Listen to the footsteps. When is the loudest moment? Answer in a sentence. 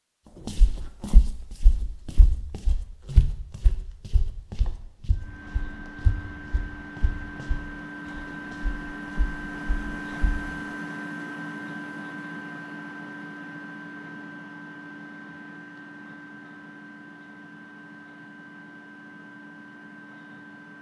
The loudest moment of the footsteps is at 3 seconds.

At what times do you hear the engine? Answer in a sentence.
The engine can be heard from 5.1 to 20.7 s.